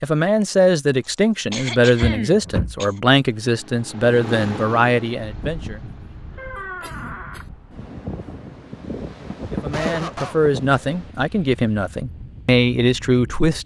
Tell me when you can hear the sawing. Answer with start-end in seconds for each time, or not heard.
not heard.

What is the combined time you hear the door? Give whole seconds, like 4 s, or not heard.
2 s.